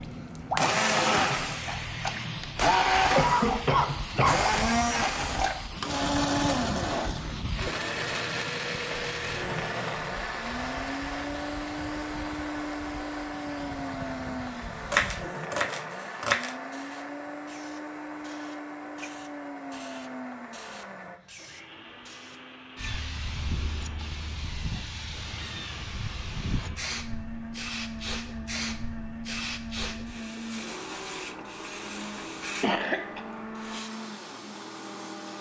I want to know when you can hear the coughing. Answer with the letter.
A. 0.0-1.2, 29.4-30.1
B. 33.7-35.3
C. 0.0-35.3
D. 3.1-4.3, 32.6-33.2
D.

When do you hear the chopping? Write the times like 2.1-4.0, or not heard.
14.9-16.6.